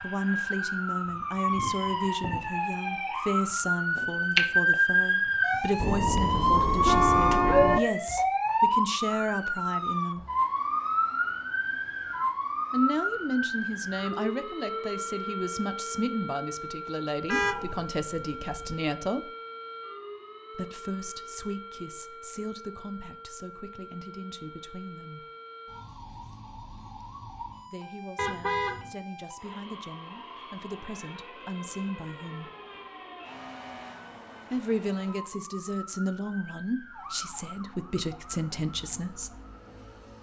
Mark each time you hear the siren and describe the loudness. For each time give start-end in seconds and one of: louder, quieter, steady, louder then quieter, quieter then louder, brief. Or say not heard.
0.0-40.1 quieter.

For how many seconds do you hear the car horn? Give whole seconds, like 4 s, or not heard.
4 s.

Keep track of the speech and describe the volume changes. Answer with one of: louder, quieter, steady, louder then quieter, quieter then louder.
quieter then louder.